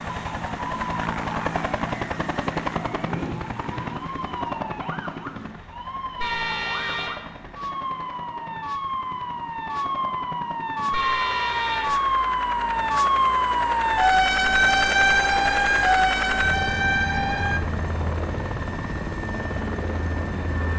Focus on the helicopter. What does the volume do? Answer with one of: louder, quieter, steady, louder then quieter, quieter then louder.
quieter then louder.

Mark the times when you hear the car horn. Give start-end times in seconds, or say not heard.
6.2-7.2, 10.9-12.0.